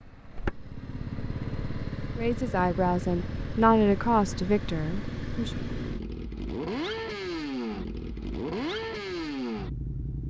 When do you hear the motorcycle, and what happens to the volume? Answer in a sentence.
The motorcycle can be heard from 0.0 to 10.2 s, at a steady volume.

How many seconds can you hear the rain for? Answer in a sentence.
The rain can't be heard in this clip.